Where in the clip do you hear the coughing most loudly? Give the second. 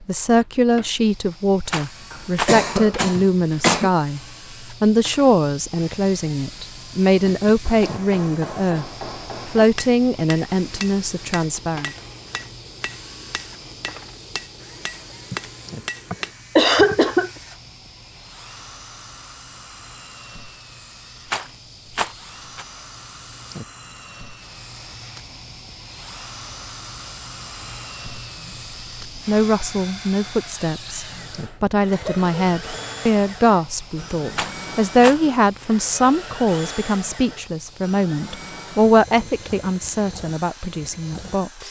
17 s.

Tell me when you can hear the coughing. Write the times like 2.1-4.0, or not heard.
2.1-3.9, 16.1-17.3, 31.9-32.9.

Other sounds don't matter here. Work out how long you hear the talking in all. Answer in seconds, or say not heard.
24 s.